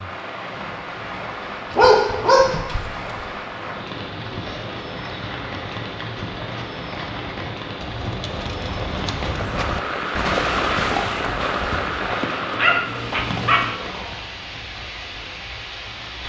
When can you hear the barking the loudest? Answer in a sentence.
The loudest moment of the barking is at 2 seconds.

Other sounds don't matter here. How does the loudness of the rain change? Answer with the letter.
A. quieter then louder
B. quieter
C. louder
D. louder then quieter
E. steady
D.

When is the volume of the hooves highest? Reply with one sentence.
The volume of the hooves peaks at 10 seconds.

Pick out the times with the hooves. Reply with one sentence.
You can hear the hooves from 4.1 to 14.6 s.